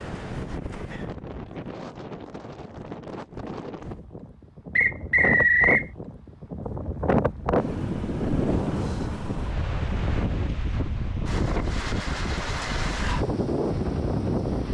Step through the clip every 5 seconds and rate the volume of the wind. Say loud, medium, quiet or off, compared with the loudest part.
medium, loud, loud.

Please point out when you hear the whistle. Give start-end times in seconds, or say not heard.
4.8-5.8.